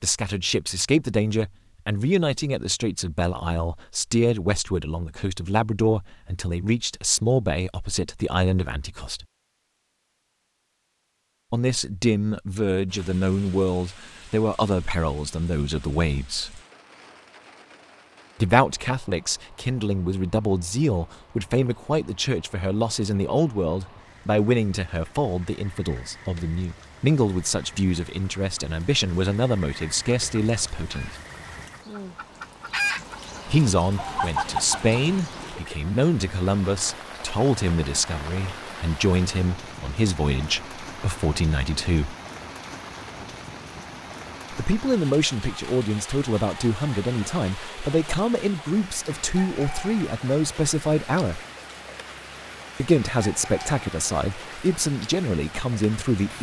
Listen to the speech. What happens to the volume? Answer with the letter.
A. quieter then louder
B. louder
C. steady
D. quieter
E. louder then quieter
C.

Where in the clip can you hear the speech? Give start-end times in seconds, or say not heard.
0.0-9.2, 11.5-16.6, 18.4-31.1, 33.5-42.1, 44.5-51.4, 52.8-56.3.